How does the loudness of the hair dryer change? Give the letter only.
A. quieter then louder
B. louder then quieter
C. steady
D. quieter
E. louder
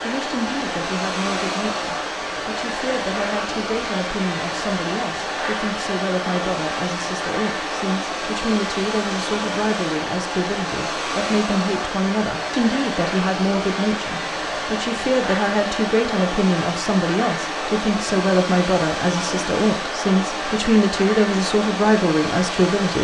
C.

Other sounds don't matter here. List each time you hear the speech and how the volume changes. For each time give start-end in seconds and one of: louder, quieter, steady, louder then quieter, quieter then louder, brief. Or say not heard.
0.0-22.9 louder.